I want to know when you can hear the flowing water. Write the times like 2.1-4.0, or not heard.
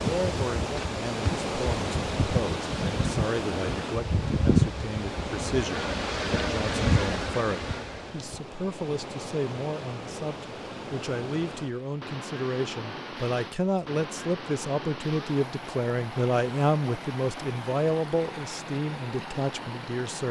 0.0-20.2.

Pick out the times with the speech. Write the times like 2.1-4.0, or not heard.
0.0-20.2.